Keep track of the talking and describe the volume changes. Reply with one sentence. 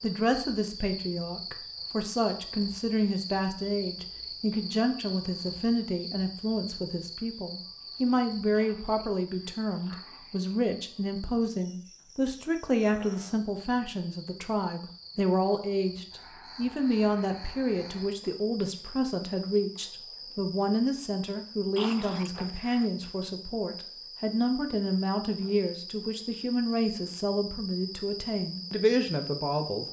The volume of the talking stays about the same.